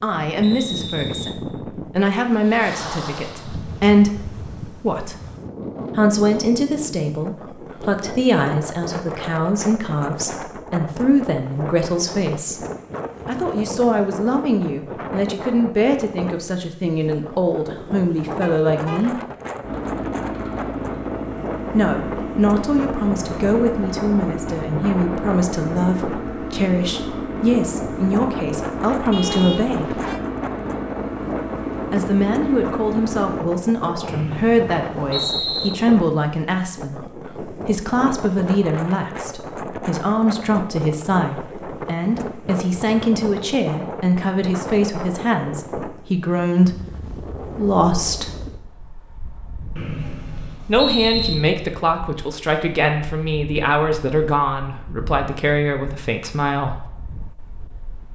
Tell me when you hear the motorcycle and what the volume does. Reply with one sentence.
The motorcycle can be heard from 19.6 to 33.5 s, at a steady volume.